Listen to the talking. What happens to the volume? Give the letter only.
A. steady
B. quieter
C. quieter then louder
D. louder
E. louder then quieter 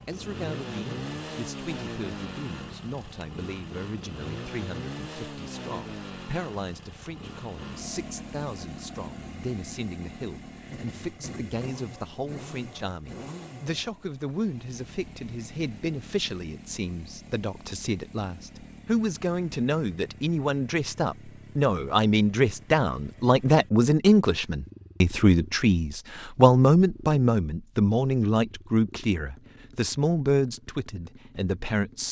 D.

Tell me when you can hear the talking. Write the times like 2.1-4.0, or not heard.
0.1-32.0.